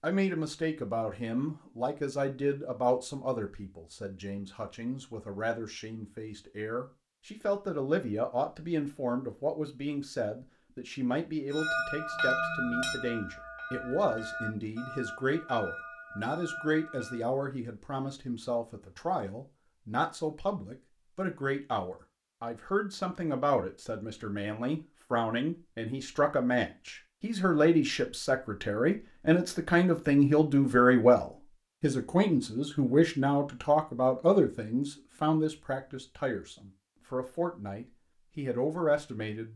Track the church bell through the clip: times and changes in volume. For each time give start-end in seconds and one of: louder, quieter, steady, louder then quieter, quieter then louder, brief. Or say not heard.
11.5-17.2 quieter.